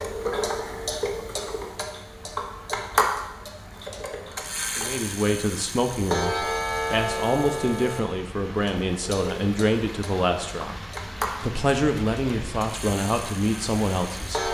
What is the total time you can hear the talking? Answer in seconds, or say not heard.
9 s.